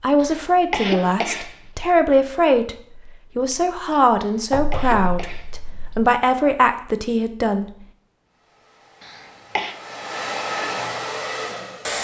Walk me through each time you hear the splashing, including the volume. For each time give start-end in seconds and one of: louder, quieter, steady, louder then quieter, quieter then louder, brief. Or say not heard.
not heard.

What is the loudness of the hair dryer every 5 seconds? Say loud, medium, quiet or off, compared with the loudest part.
off, quiet, loud.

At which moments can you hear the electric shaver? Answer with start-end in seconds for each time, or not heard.
not heard.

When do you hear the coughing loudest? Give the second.
1 s.